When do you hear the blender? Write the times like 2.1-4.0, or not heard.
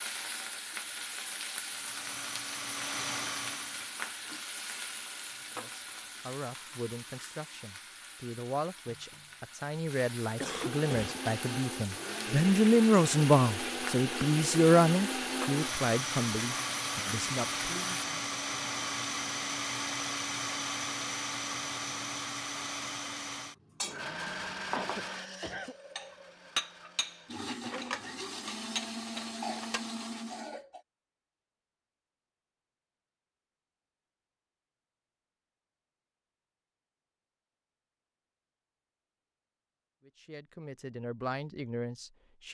1.6-4.0, 10.4-30.6.